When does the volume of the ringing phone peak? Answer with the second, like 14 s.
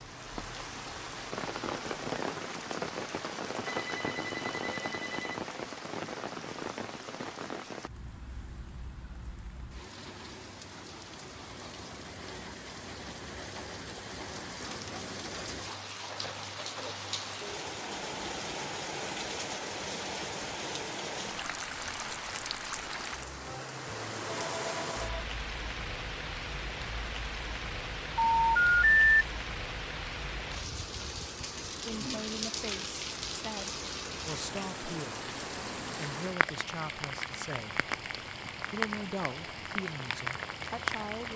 29 s.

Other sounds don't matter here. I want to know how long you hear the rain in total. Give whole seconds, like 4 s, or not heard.
41 s.